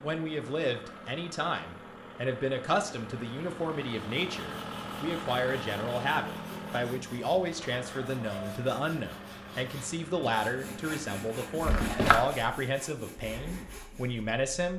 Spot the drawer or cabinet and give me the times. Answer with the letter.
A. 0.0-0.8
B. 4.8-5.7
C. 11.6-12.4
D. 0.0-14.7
C.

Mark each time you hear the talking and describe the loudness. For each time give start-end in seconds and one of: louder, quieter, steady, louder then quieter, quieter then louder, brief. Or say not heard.
0.0-14.7 steady.